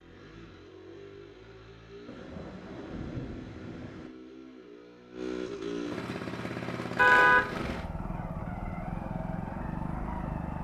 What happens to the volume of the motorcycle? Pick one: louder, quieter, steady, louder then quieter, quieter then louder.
louder.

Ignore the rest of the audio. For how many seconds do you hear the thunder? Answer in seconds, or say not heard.
2 s.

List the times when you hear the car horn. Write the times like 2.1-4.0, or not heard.
7.0-7.7.